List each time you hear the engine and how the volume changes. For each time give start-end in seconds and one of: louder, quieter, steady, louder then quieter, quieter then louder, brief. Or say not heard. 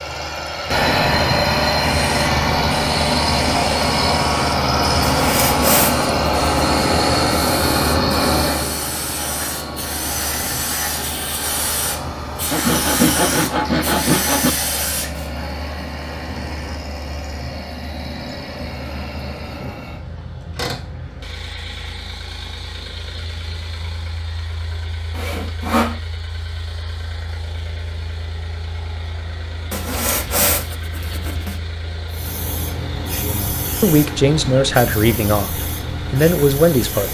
0.0-37.0 quieter.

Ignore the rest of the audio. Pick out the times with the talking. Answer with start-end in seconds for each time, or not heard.
33.2-37.0.